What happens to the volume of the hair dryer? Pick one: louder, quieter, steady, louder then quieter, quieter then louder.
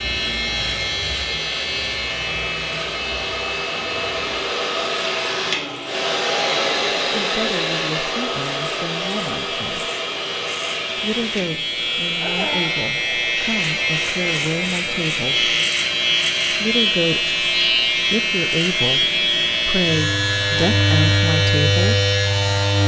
louder then quieter.